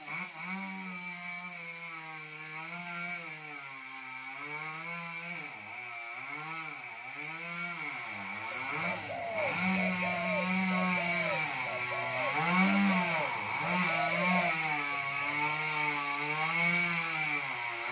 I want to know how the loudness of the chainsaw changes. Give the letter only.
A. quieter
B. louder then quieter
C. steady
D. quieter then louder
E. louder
E.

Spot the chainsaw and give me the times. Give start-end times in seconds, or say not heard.
0.0-17.8.